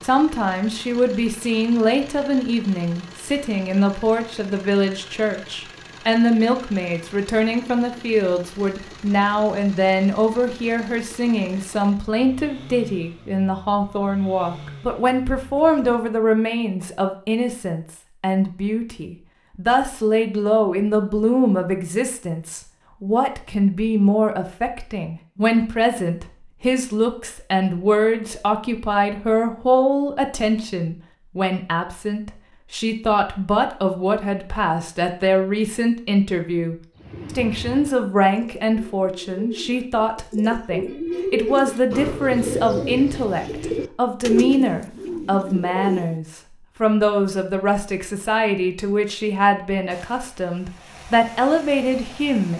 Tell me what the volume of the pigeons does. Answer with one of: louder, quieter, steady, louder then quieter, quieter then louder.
louder.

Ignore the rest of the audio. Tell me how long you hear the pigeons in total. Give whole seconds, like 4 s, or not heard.
9 s.